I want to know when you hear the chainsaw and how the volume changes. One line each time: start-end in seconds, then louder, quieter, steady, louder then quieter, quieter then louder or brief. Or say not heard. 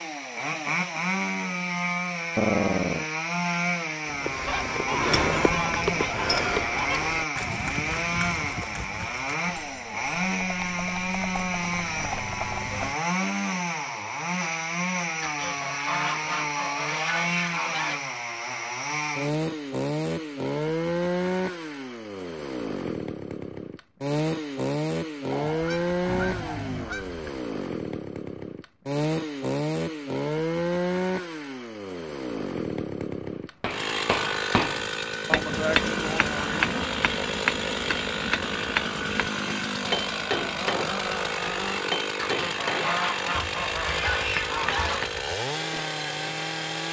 0.0-46.8 steady.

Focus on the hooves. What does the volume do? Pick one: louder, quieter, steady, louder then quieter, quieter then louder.
quieter then louder.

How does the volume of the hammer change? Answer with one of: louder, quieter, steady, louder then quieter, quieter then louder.
quieter.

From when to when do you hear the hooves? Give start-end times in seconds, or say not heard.
4.0-12.9.